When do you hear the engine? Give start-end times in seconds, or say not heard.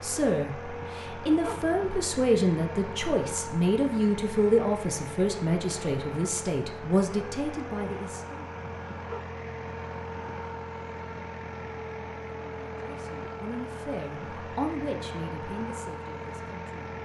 0.0-17.0.